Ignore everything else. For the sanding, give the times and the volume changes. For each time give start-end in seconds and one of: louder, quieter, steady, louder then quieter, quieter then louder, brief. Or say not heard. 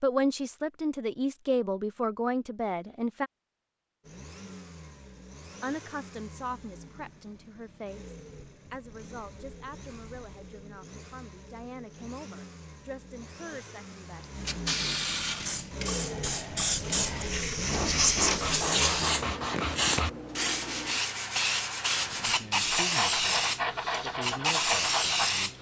17.6-25.4 steady.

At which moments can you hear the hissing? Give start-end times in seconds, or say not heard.
14.2-25.5.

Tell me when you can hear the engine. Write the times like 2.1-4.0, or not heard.
4.0-19.4.